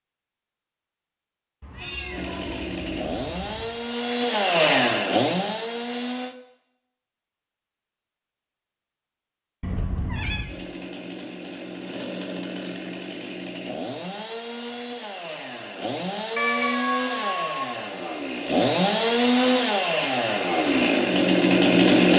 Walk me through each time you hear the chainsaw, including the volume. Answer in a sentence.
The chainsaw can be heard from 2.1 to 6.3 s, getting louder then quieter; and from 10.4 to 22.1 s, getting louder.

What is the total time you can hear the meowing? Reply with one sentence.
The meowing can be heard for 4 seconds in total.